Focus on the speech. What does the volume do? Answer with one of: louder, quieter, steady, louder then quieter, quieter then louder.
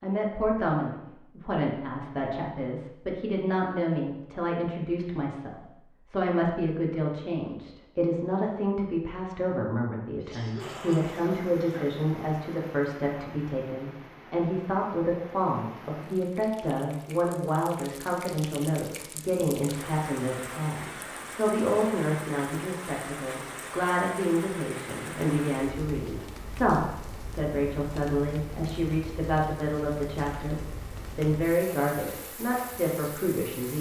steady.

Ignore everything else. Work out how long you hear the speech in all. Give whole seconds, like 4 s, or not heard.
34 s.